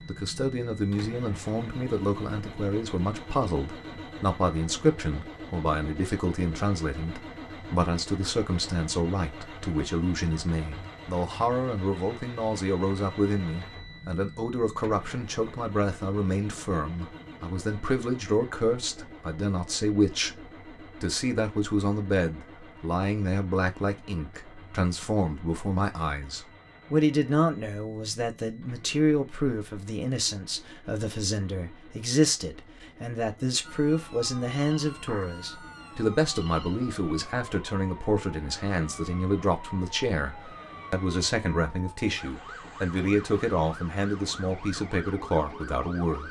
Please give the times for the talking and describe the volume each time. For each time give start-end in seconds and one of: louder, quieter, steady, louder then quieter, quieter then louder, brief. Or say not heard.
0.1-46.2 steady.